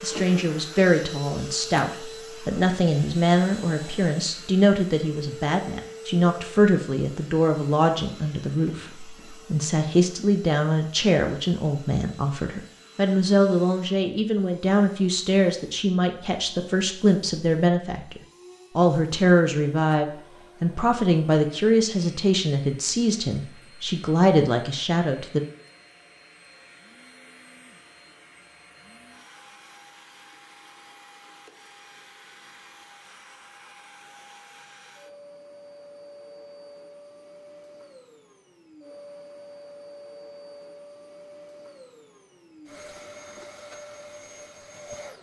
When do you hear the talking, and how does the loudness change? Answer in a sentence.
The talking can be heard from 0.0 to 25.4 s, at a steady volume.